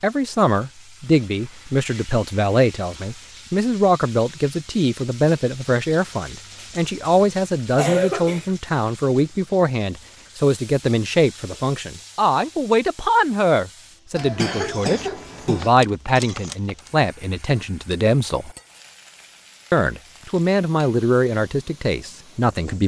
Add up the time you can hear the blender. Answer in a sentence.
The blender can't be heard in this clip.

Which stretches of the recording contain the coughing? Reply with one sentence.
You can hear the coughing from 7.8 to 8.5 s and from 14.2 to 15.7 s.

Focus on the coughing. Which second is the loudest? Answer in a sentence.
The loudest moment of the coughing is at 8 seconds.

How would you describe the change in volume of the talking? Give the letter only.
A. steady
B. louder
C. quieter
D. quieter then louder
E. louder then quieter
A.